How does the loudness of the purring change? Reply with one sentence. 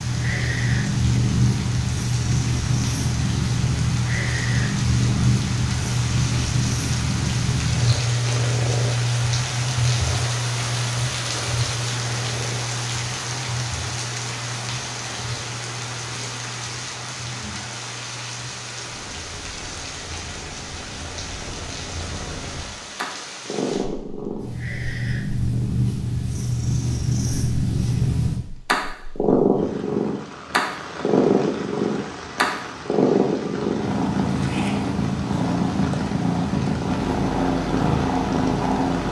The loudness of the purring goes down, then up.